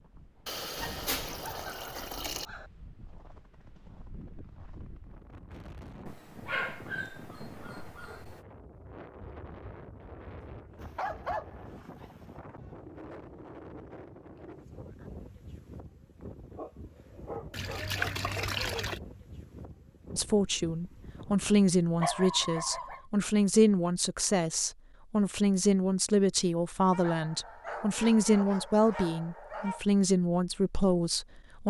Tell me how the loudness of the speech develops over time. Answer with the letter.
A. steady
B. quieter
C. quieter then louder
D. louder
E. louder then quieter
A.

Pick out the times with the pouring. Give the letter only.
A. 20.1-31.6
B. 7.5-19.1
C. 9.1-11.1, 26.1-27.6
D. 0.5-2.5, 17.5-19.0
D.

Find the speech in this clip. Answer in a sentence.
You can hear the speech from 20.1 to 31.6 s.